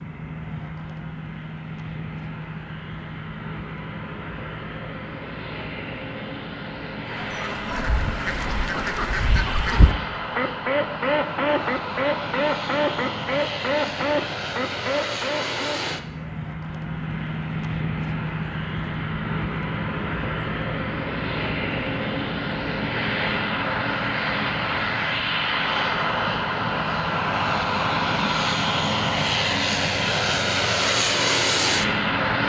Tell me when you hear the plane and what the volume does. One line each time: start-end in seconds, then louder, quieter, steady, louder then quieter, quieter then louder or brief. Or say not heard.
0.0-32.4 louder.